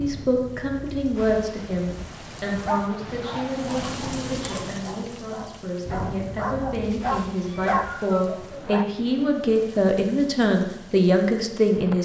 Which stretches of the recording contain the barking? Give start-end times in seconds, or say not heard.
2.5-8.9.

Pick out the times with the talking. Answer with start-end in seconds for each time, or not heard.
0.0-12.0.